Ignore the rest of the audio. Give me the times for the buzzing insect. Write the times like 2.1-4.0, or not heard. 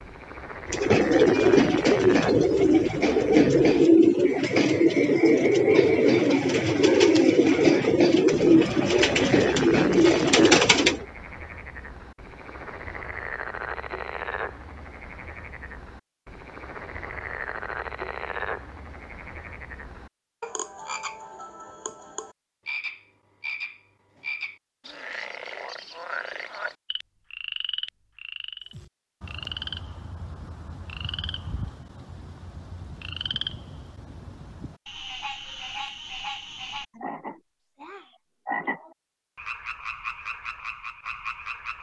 not heard.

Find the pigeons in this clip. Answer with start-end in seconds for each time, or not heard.
0.7-11.1.